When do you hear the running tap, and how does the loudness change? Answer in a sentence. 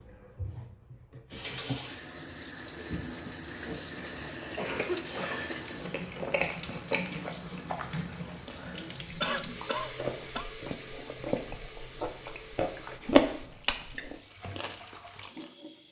You can hear the running tap from 0.0 to 15.8 s, getting quieter.